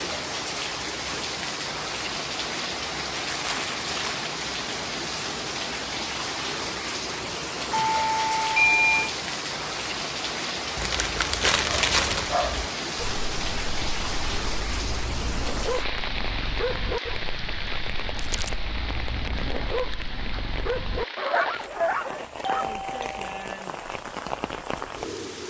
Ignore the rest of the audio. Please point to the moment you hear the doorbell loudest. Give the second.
9 s.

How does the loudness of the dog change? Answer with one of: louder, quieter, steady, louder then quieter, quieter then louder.
louder.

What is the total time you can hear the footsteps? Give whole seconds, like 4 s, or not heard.
not heard.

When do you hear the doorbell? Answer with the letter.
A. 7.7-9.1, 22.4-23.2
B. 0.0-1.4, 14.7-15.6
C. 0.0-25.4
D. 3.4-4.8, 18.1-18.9
A.